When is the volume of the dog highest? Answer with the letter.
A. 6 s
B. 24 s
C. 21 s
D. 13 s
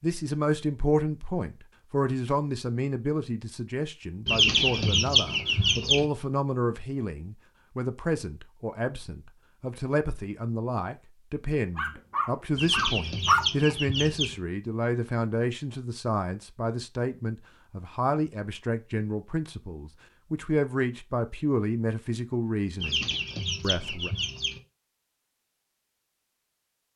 D.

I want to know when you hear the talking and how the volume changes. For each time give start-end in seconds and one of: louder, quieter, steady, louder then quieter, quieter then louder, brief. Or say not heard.
0.0-24.1 steady.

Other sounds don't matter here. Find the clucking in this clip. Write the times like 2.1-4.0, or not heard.
4.2-6.0, 12.6-14.3, 22.8-24.6.